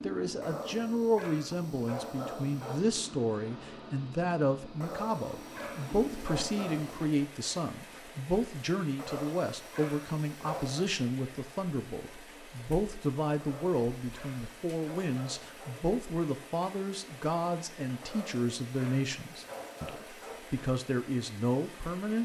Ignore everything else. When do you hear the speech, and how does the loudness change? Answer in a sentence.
You can hear the speech from 0.0 to 22.2 s, at a steady volume.